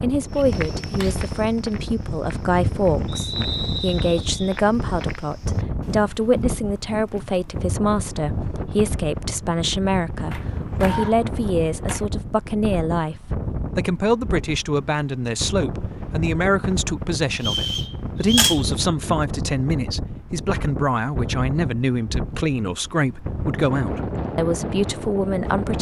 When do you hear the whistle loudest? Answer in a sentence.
The volume of the whistle peaks at 18 seconds.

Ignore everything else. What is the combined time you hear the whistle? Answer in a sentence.
The whistle can be heard for 3 seconds in total.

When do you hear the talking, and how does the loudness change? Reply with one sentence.
You can hear the talking from 0.0 to 25.7 s, at a steady volume.